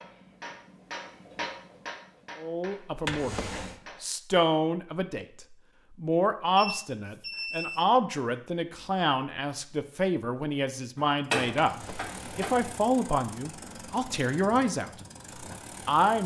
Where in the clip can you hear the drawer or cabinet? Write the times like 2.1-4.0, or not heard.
3.0-3.8, 11.6-12.5.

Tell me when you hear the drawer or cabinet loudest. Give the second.
3 s.